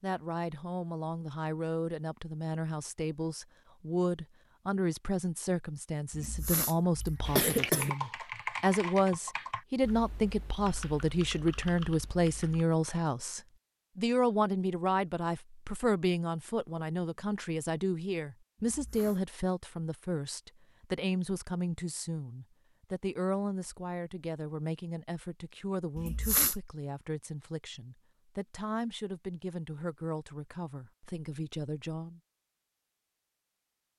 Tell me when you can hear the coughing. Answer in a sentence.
The coughing can be heard from 6.1 to 7.9 s, from 18.6 to 19.2 s and from 25.9 to 26.6 s.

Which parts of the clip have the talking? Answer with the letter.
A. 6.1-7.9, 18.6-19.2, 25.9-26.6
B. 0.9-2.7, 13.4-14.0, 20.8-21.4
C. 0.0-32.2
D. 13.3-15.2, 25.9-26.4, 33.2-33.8
C.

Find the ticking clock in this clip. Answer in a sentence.
The ticking clock can't be heard in this clip.